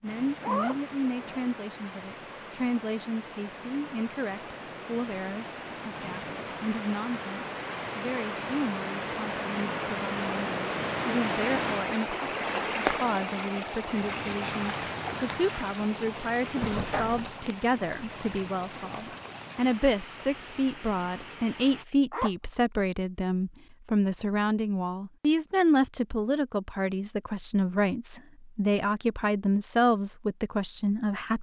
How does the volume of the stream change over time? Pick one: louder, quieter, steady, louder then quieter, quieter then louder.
louder then quieter.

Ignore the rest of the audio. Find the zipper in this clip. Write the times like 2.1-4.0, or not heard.
0.4-1.6, 16.6-17.3, 22.1-22.6.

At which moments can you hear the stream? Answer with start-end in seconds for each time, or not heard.
0.0-21.9.